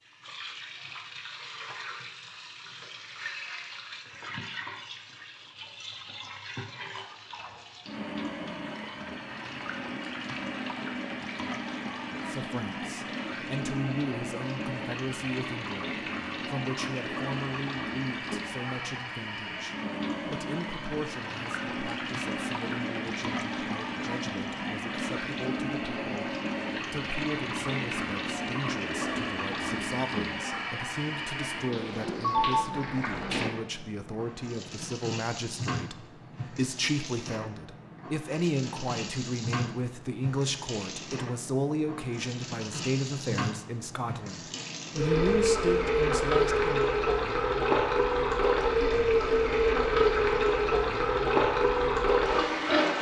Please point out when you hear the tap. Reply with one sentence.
You can hear the tap from 0.0 to 52.9 s.